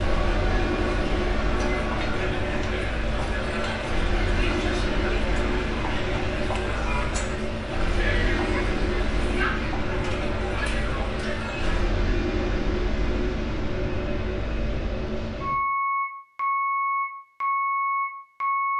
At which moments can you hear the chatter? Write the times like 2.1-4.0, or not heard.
0.0-12.0.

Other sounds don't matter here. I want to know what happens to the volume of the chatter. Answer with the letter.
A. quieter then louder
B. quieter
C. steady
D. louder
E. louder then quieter
C.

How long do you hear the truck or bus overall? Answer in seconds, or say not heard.
19 s.